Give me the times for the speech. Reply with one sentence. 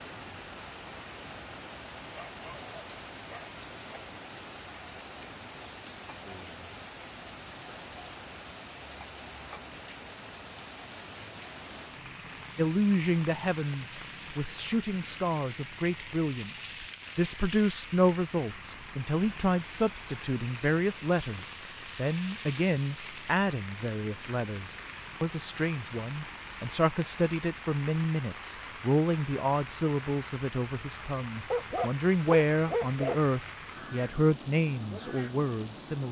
You can hear the speech from 12.6 to 36.0 s.